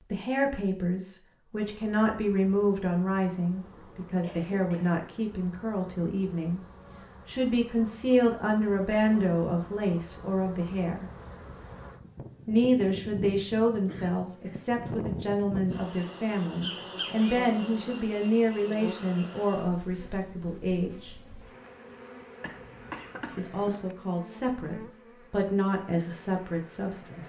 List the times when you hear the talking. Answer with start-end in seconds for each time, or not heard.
0.1-6.6, 7.2-11.1, 12.4-21.1, 23.4-27.2.